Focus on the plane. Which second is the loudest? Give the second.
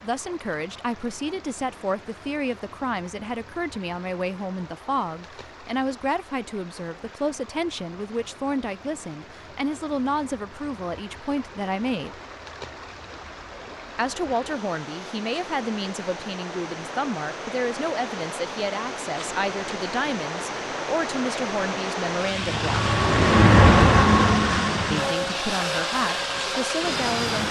24 s.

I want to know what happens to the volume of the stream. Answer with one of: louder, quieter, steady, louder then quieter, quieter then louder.
louder.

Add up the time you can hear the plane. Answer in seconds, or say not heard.
5 s.